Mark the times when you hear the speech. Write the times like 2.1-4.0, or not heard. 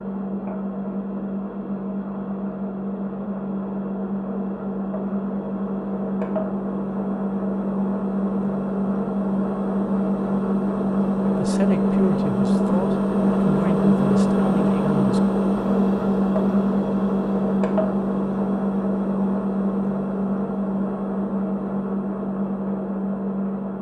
11.3-15.2.